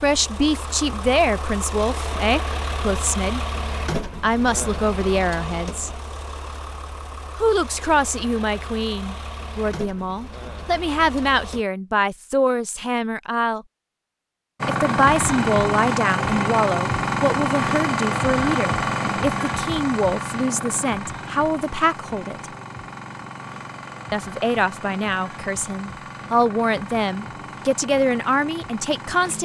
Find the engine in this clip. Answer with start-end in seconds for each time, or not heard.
0.0-11.7, 14.6-29.4.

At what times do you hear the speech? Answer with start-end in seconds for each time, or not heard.
0.0-3.4, 4.2-5.9, 7.3-13.7, 14.7-22.5, 24.1-29.4.